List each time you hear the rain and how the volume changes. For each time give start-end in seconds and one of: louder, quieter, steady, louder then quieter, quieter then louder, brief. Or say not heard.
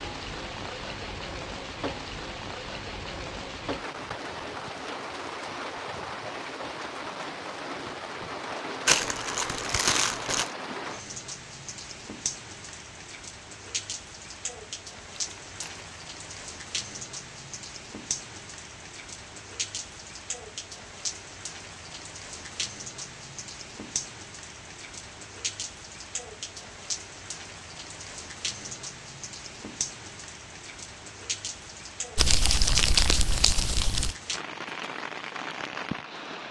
0.0-36.4 steady.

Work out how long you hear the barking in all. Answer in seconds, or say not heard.
not heard.